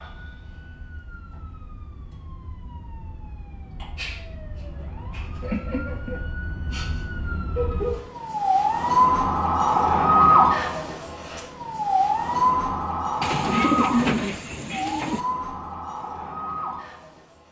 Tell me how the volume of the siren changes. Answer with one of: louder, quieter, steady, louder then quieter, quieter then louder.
louder then quieter.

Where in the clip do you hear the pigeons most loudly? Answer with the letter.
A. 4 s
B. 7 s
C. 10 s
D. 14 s
D.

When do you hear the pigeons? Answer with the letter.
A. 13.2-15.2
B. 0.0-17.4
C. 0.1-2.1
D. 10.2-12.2
A.